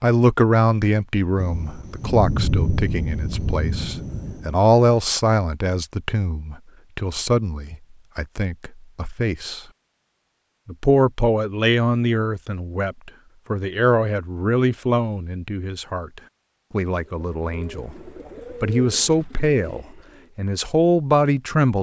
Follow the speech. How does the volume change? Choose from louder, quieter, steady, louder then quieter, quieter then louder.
steady.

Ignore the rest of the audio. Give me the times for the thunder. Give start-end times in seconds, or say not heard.
1.4-4.5.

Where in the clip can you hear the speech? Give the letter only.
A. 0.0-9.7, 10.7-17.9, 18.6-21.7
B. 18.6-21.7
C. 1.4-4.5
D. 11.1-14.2
A.